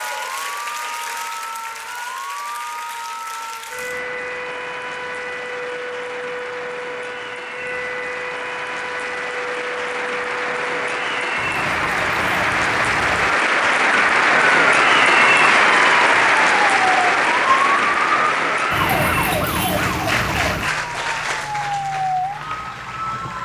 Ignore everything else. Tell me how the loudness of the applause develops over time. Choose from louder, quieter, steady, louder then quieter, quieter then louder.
louder then quieter.